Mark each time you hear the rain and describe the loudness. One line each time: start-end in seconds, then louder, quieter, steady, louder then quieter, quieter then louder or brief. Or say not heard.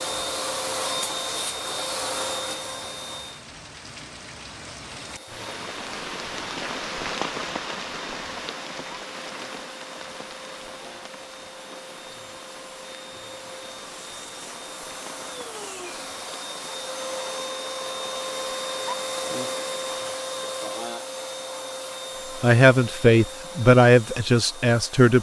0.0-20.2 louder then quieter.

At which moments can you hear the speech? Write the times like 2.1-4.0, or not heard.
22.4-25.1.